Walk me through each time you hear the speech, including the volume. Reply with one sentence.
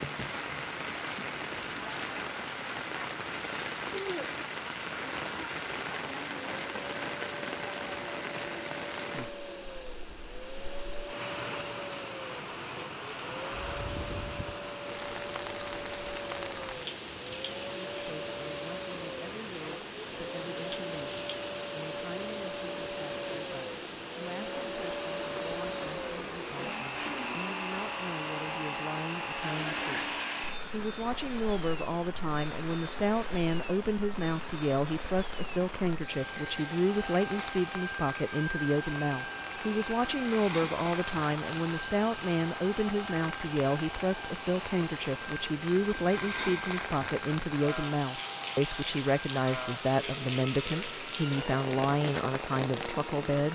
The speech can be heard from 17.7 to 53.5 s, getting louder.